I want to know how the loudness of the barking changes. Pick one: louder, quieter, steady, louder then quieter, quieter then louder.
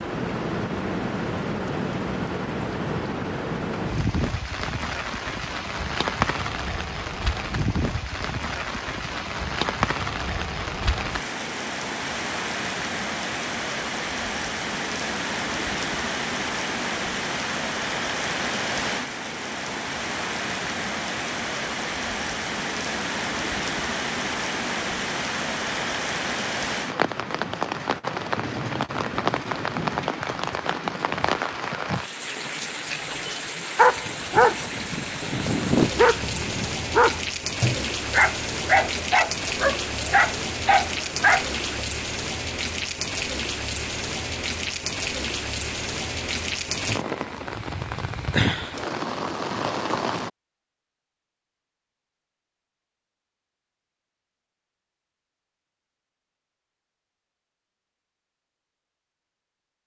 steady.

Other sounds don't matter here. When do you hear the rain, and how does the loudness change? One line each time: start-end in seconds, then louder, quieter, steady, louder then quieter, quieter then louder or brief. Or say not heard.
0.0-50.3 steady.